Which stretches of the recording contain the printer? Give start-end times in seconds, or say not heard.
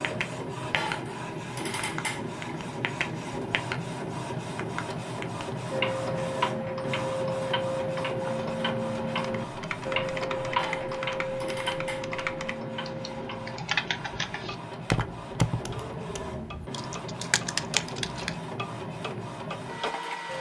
0.0-20.3.